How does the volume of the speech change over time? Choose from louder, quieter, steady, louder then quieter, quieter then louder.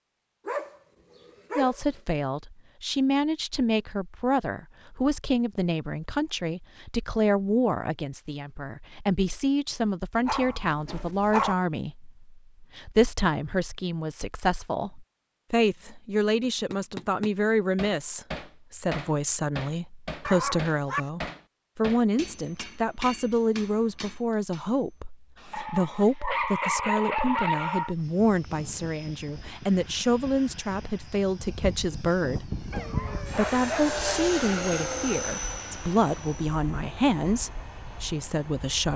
steady.